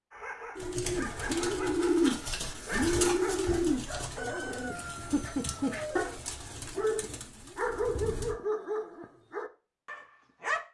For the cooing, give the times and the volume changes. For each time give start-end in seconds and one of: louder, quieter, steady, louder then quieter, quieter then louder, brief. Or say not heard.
0.6-8.3 quieter.